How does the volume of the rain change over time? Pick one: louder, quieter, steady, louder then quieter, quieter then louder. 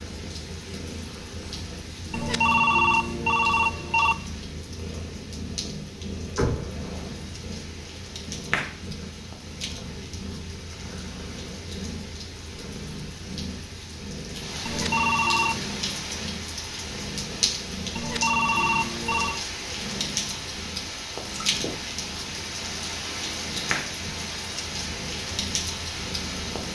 louder.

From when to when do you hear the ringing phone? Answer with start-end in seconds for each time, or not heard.
2.1-4.2, 14.7-15.7, 17.9-19.4.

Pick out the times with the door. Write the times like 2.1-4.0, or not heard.
6.3-7.0.